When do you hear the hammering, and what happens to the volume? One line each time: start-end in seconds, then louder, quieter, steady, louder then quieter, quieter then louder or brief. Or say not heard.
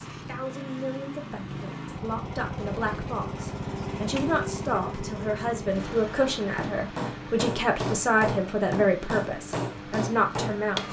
6.4-10.8 steady.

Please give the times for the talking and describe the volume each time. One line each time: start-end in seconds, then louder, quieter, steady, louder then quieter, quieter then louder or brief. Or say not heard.
0.0-10.8 louder.